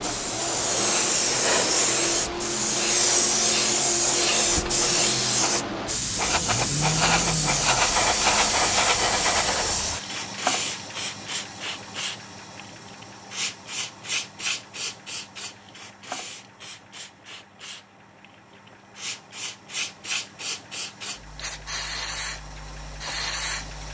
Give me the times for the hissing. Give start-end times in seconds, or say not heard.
0.0-23.9.